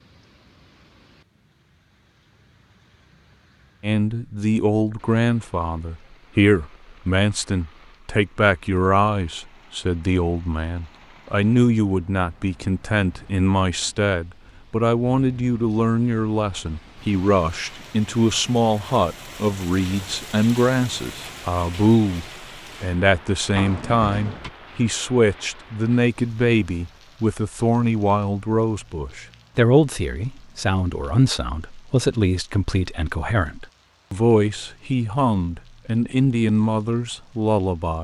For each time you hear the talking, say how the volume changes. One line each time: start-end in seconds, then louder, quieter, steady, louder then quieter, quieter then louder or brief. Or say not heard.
3.8-37.9 steady.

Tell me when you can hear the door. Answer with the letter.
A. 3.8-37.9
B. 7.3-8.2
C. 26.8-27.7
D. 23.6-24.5
D.